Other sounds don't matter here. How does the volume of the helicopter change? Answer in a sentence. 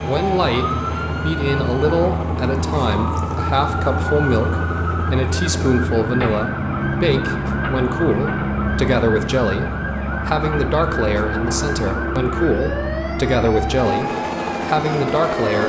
The volume of the helicopter stays about the same.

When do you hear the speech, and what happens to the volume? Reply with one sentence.
You can hear the speech from 0.0 to 15.6 s, at a steady volume.